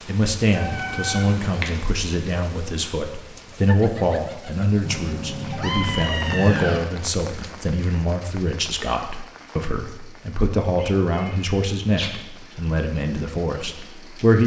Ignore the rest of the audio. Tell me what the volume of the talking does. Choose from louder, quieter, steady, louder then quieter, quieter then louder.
steady.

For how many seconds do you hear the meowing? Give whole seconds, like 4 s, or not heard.
5 s.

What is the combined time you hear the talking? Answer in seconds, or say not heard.
14 s.